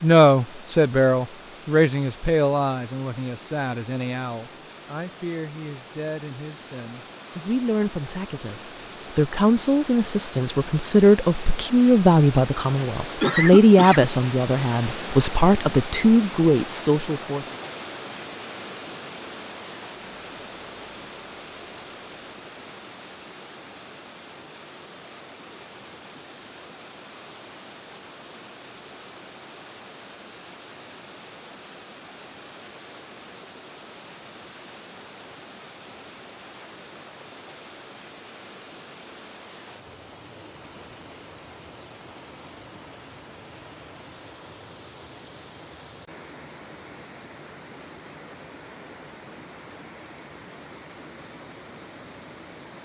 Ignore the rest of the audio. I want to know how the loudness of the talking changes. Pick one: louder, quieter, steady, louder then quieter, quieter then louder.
quieter then louder.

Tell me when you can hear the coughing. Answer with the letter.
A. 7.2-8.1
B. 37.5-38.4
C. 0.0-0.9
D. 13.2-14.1
D.